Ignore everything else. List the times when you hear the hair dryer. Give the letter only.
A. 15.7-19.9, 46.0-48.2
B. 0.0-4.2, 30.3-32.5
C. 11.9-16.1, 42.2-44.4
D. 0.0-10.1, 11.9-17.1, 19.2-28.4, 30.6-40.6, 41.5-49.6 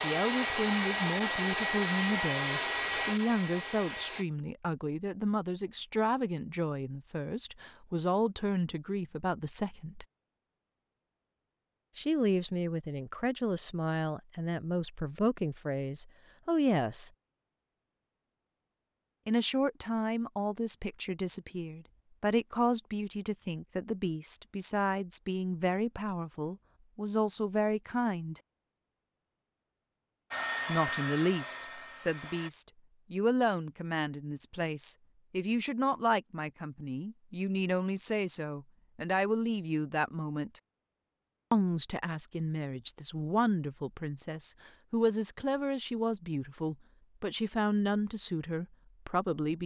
B.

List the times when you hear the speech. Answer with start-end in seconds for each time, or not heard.
0.0-10.1, 11.9-17.1, 19.2-28.4, 30.6-40.6, 41.5-49.6.